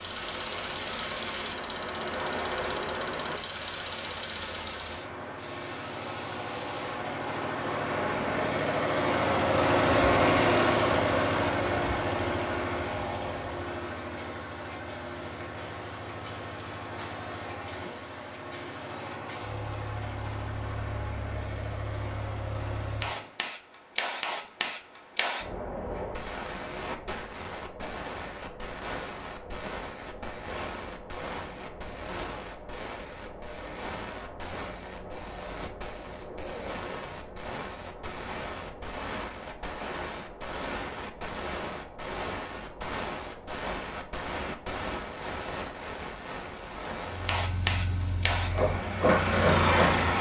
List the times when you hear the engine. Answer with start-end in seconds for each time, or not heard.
0.0-23.4, 47.0-50.1.